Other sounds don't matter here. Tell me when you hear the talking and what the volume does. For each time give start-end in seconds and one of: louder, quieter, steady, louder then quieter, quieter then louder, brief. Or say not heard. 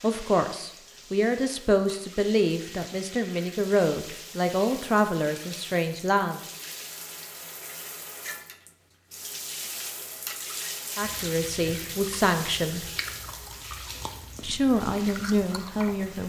0.0-6.5 steady
10.9-12.8 brief
14.4-16.2 brief.